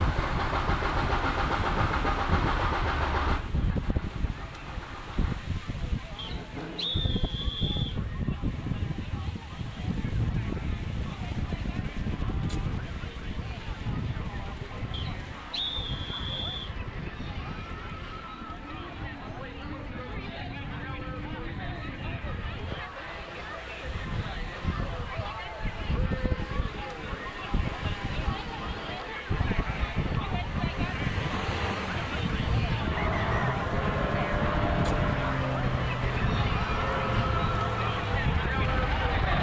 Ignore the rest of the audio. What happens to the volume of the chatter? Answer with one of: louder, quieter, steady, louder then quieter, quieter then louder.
louder.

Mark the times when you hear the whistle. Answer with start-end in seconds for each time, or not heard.
6.2-8.0, 14.9-16.8, 33.0-33.5.